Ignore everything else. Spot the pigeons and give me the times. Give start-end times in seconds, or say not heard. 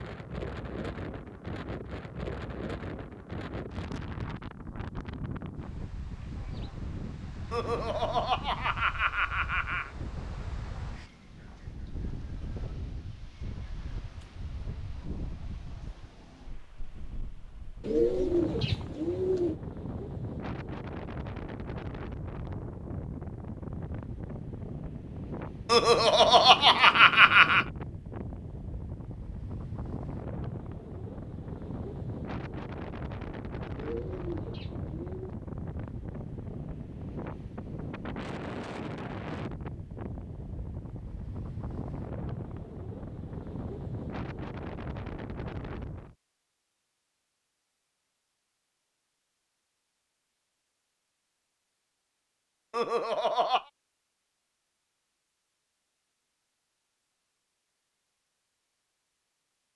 17.8-19.6, 33.8-35.4.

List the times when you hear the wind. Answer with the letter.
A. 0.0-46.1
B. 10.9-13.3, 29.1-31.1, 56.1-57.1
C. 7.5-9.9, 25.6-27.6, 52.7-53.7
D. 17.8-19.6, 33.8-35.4
A.